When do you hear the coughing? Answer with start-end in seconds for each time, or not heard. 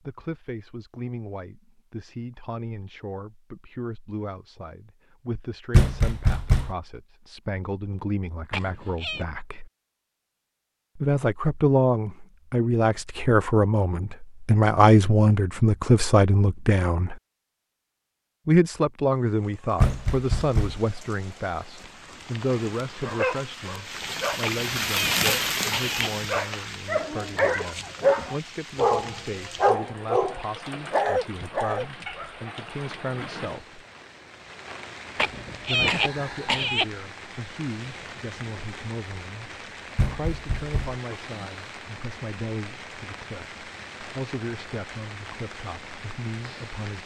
8.5-9.2, 24.4-26.1, 35.1-36.9.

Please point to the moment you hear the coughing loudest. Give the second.
36 s.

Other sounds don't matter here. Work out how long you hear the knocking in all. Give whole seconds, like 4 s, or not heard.
3 s.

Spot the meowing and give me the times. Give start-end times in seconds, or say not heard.
not heard.